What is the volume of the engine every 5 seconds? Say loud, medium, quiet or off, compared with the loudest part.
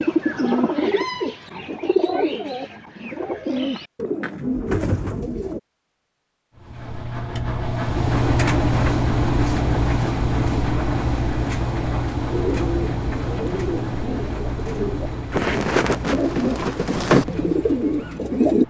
off, loud, loud, quiet.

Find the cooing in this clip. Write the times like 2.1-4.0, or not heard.
0.0-5.6, 12.2-18.6.